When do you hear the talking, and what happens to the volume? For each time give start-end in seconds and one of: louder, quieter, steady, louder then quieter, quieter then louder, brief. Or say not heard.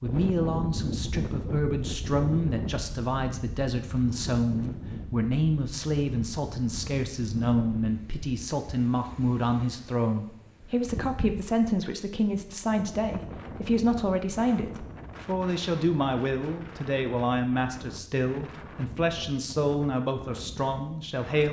0.0-21.4 steady.